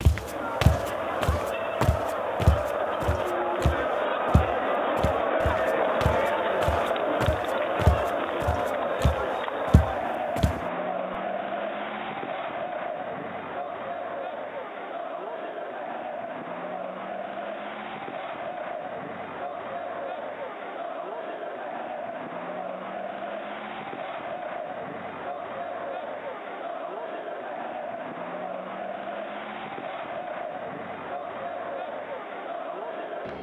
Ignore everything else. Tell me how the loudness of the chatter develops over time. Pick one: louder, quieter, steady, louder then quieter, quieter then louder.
quieter.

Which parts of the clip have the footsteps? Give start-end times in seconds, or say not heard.
0.0-10.6.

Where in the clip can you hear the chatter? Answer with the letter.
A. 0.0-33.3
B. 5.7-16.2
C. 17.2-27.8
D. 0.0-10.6
A.